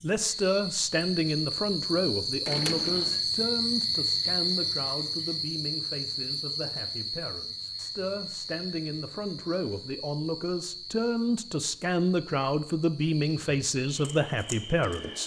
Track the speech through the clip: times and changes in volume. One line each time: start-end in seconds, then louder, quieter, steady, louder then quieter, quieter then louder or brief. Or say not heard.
0.0-15.2 quieter then louder.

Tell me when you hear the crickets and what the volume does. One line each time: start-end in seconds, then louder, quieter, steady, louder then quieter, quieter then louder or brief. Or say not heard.
0.0-15.2 quieter.